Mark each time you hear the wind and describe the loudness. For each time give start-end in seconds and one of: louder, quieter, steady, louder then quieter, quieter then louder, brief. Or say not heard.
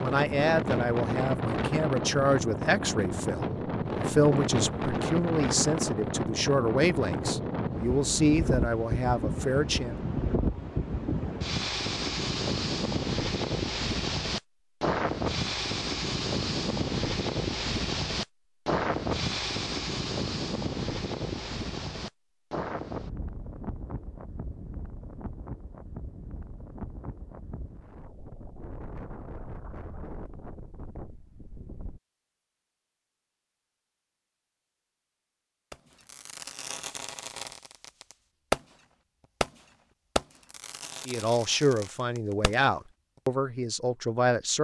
0.0-32.0 quieter.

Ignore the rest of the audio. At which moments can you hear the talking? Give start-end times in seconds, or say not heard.
0.0-9.9, 41.0-44.5.